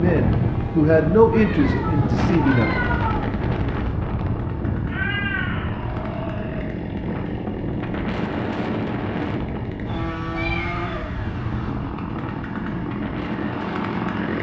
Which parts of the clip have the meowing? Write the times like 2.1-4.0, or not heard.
1.3-3.3, 4.8-6.7, 9.9-11.4.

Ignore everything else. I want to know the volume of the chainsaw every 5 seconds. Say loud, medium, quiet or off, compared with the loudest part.
medium, loud, loud.